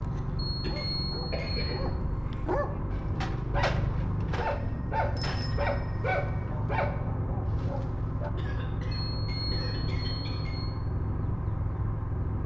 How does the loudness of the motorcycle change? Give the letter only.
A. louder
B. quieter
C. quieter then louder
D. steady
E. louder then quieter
D.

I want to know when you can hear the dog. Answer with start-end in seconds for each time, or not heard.
0.0-8.3.